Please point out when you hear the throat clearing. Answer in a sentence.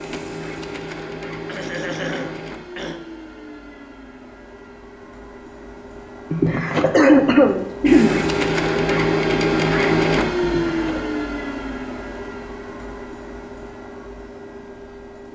The throat clearing can be heard from 1.4 to 3.0 s, from 6.3 to 8.2 s and from 10.4 to 11.0 s.